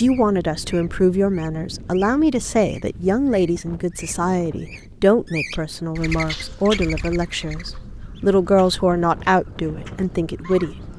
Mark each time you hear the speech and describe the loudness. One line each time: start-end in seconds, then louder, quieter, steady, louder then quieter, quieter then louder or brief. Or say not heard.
0.0-10.8 steady.